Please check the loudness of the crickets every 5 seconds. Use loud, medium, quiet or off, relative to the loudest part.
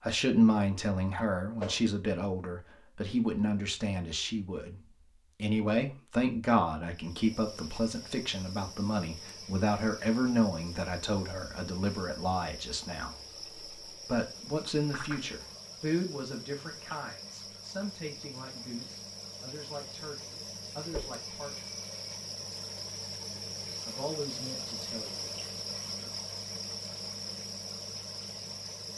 off, medium, medium, medium, loud, loud.